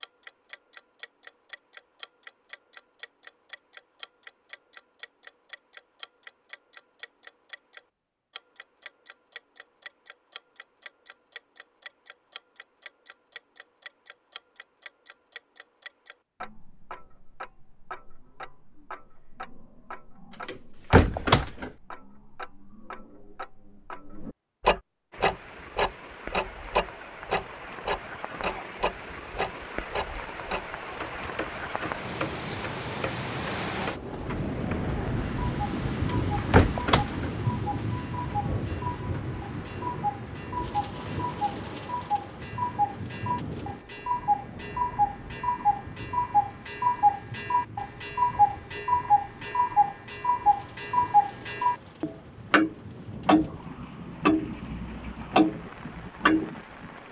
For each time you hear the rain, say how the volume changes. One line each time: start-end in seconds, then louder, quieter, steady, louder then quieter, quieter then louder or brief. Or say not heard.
25.1-57.0 louder then quieter.